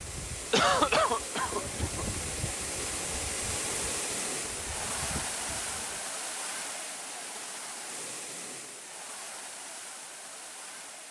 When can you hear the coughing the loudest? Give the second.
1 s.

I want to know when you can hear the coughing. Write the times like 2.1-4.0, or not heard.
0.5-2.0.